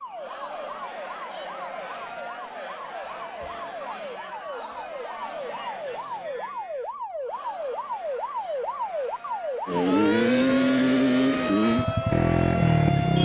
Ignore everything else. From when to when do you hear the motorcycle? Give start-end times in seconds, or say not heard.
9.7-13.2.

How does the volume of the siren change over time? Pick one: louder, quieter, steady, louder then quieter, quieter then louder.
louder.